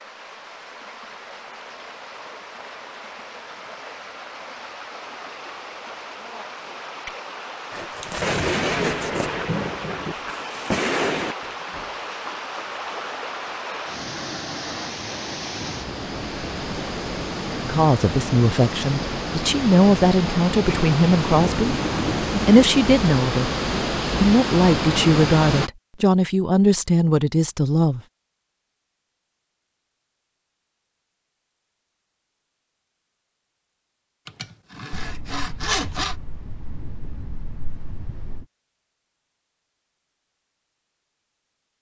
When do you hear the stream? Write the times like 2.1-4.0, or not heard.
0.0-25.7.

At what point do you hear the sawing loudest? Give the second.
36 s.